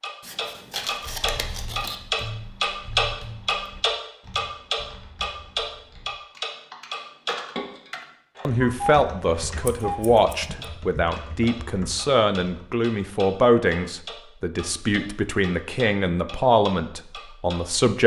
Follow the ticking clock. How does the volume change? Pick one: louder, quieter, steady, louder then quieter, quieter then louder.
quieter.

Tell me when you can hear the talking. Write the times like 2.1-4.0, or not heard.
8.4-18.0.